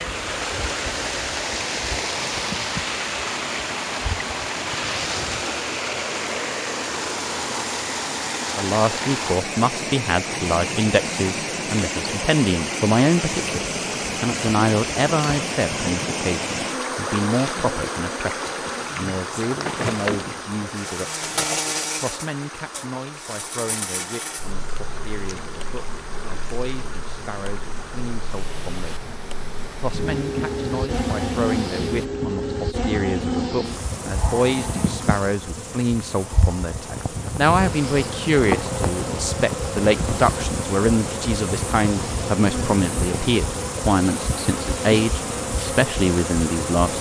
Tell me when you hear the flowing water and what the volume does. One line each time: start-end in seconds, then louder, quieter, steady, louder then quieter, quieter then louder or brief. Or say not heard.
0.0-32.1 quieter.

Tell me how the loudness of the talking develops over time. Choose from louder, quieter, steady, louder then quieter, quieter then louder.
quieter then louder.